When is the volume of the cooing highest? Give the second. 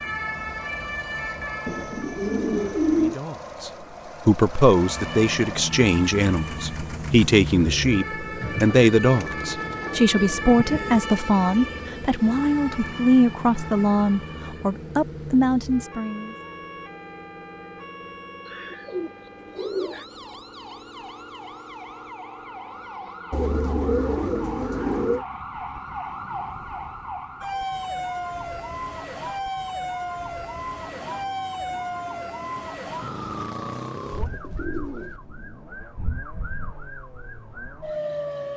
3 s.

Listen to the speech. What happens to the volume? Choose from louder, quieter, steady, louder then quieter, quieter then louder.
steady.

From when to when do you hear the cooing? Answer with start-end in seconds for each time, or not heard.
1.6-3.1, 8.4-11.0, 18.4-20.1, 23.3-25.2, 34.1-35.2.